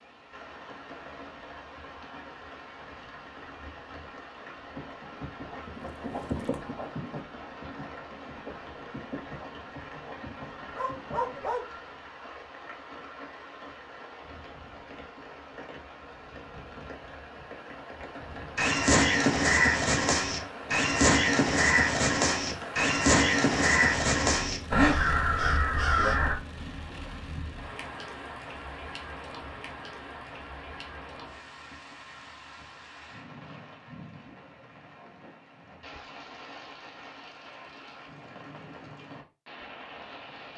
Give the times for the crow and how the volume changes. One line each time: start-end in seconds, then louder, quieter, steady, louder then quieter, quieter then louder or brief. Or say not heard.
18.6-26.4 steady.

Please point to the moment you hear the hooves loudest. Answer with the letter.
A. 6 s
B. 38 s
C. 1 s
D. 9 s
A.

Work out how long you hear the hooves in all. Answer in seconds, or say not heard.
7 s.